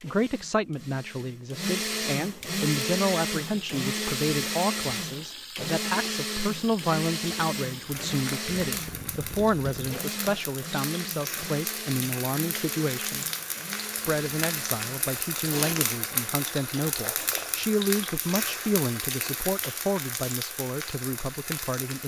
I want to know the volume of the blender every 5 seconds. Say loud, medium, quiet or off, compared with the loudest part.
loud, loud, medium, off, off.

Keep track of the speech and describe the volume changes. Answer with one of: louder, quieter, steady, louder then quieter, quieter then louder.
steady.